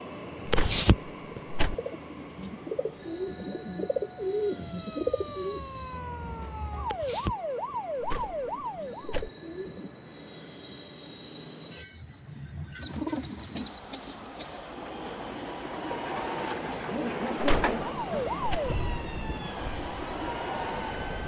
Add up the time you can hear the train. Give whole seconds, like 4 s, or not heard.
21 s.